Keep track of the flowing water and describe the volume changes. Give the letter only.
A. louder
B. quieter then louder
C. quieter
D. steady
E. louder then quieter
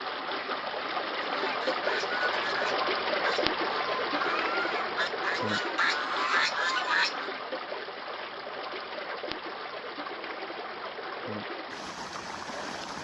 C.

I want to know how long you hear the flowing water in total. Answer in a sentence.
The flowing water can be heard for 13 seconds in total.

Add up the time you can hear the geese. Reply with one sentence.
You can hear the geese for 6 seconds altogether.